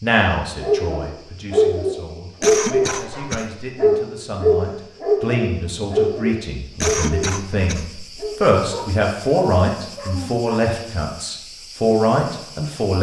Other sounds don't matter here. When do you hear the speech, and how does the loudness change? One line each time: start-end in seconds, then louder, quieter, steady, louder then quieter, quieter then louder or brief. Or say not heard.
0.0-12.9 louder.